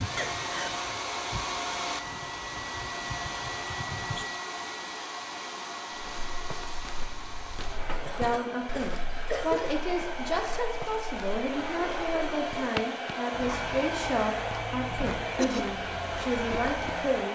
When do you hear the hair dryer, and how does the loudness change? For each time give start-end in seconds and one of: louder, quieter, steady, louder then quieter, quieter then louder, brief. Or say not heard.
0.0-17.3 quieter then louder.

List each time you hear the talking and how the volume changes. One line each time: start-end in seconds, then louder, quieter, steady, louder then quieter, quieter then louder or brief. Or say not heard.
8.1-17.3 steady.